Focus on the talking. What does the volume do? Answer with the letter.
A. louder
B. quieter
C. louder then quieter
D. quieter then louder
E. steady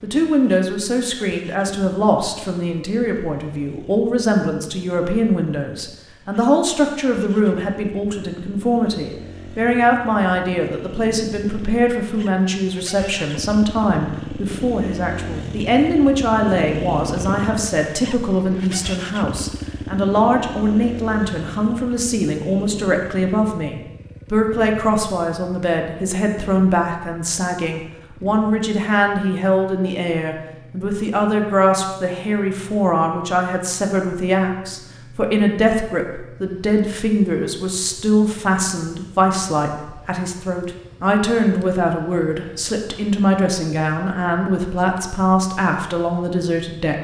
E.